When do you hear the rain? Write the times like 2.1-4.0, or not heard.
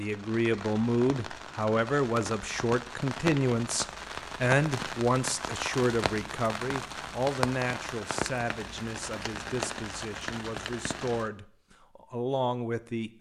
0.0-11.3.